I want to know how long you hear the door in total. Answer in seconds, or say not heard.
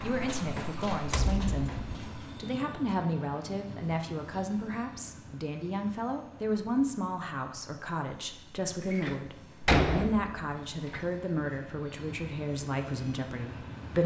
3 s.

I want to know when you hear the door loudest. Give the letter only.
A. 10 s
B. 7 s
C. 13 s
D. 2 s
A.